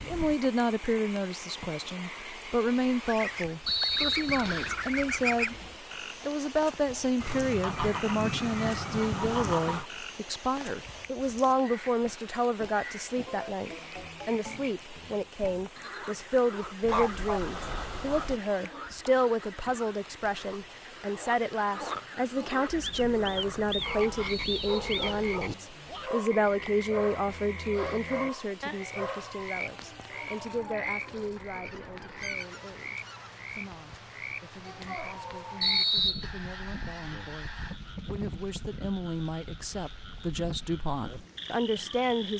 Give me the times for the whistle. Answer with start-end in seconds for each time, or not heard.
3.6-4.8, 24.2-25.4, 35.6-36.3.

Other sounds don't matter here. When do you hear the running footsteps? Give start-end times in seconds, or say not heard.
not heard.